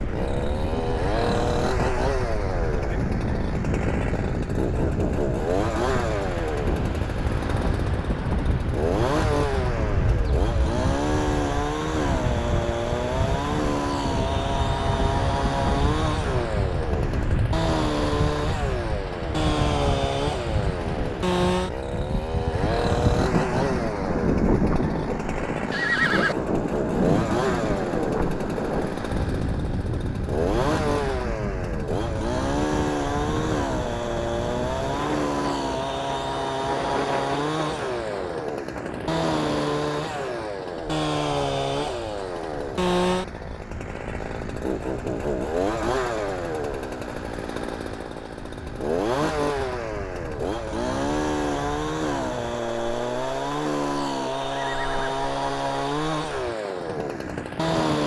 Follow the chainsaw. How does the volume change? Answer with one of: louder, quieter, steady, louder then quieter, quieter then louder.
steady.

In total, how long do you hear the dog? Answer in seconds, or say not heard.
not heard.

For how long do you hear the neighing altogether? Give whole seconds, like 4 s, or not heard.
2 s.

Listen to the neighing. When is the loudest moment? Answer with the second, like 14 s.
26 s.